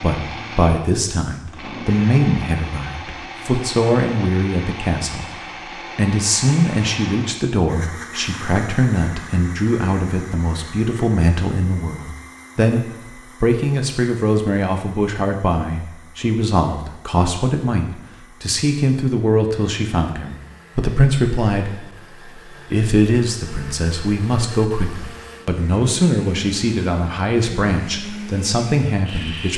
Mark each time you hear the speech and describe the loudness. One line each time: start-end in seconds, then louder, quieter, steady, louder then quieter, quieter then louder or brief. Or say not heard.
0.0-5.2 steady
6.0-29.5 steady.